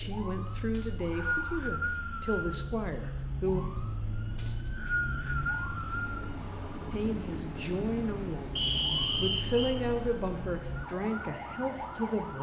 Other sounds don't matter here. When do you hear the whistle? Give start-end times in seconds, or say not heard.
0.7-2.6, 4.3-6.2, 8.6-9.8.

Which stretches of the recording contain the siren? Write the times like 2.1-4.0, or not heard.
0.0-12.3.